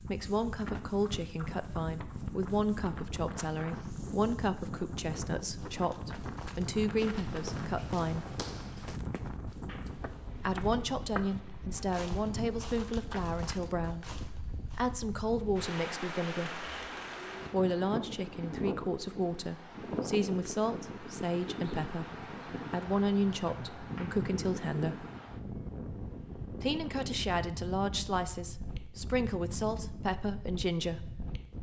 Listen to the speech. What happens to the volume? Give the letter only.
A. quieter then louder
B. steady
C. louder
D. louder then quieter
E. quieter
B.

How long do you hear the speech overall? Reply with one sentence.
You can hear the speech for 27 seconds altogether.